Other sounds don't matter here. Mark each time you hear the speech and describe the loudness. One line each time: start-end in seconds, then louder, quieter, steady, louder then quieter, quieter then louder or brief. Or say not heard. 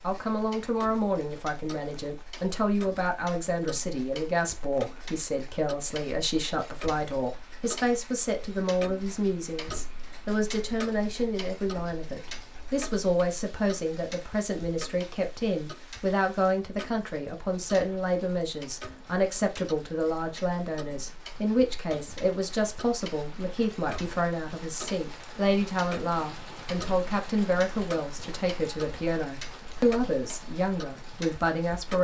0.0-31.9 steady.